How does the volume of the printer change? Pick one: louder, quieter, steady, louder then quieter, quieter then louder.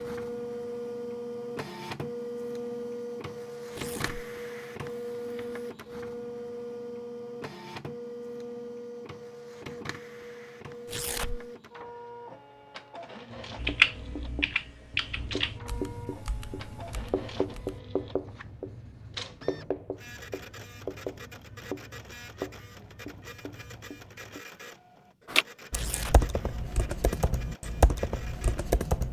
quieter.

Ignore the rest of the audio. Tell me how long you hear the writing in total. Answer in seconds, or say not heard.
11 s.